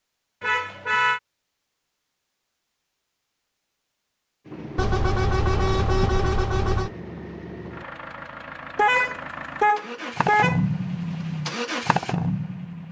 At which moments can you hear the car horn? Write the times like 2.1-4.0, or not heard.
0.4-1.2, 4.8-6.9, 8.8-10.6.